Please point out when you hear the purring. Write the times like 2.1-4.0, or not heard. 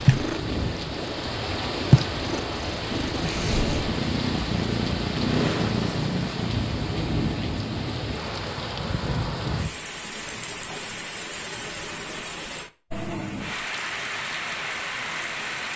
0.0-6.8.